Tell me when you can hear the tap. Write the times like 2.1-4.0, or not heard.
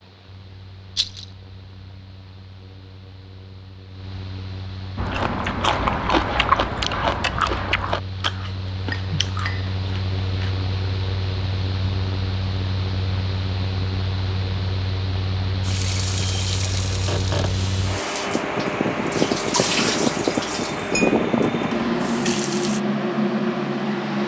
15.6-22.8.